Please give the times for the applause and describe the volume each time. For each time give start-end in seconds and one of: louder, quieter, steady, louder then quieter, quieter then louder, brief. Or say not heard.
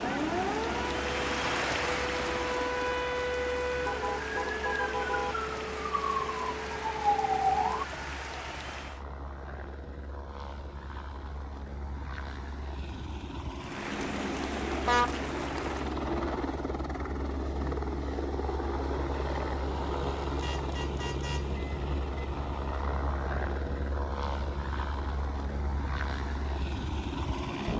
0.0-9.1 quieter
13.6-15.9 brief.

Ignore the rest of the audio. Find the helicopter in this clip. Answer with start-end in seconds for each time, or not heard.
0.0-27.7.